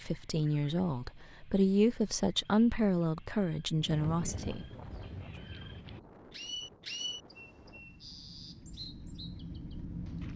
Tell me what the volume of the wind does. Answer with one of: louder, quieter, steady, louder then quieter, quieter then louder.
quieter then louder.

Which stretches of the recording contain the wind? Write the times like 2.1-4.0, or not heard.
3.8-10.3.